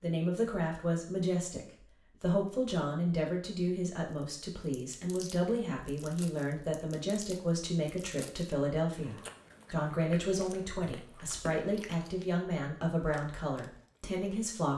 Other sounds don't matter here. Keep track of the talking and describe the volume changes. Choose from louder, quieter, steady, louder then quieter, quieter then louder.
steady.